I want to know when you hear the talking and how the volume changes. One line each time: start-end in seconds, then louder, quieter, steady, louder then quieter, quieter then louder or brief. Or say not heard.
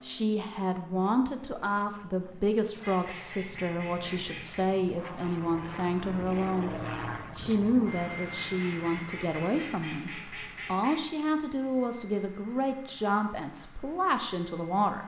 0.0-15.0 steady.